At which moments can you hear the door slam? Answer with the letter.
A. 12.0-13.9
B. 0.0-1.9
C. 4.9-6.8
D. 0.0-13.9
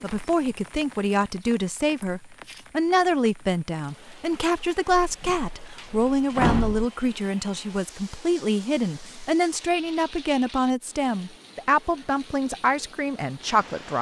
C.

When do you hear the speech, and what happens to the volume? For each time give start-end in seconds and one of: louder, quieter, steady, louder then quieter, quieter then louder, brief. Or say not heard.
0.0-13.9 steady.